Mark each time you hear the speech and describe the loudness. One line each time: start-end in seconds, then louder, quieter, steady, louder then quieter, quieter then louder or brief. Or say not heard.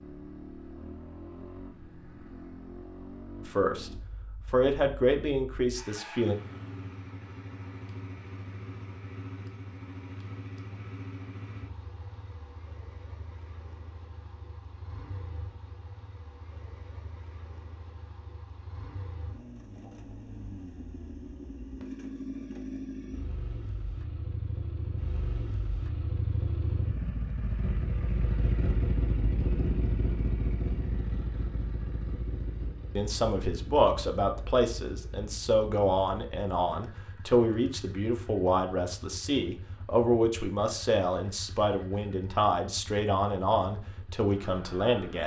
3.5-6.3 brief
33.0-45.2 steady.